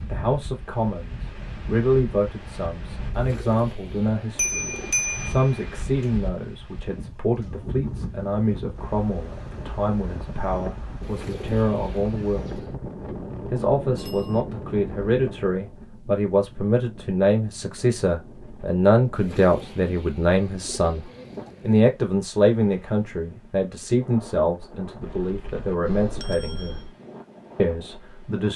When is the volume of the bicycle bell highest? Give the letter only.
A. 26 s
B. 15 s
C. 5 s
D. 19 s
C.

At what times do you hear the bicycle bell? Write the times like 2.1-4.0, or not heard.
4.3-5.7, 13.9-14.4, 25.0-26.9.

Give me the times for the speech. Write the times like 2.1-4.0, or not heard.
0.1-12.6, 13.4-21.1, 21.6-26.8, 27.6-28.5.